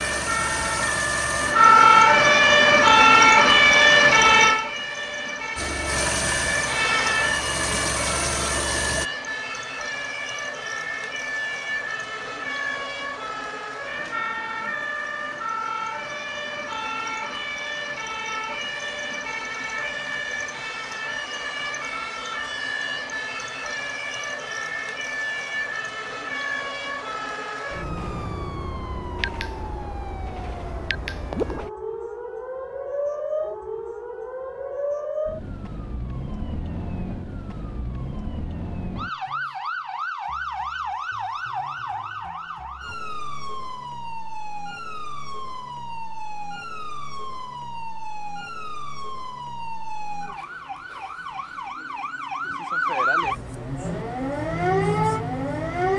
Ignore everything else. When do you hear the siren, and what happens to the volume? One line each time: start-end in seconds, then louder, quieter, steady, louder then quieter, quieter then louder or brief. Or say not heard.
0.0-55.9 quieter.